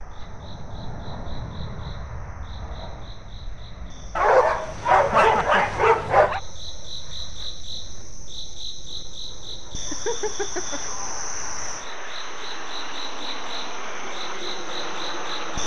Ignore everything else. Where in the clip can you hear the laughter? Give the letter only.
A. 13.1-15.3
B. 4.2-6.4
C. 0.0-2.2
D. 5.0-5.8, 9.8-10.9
D.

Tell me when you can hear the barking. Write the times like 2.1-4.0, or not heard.
4.2-6.4.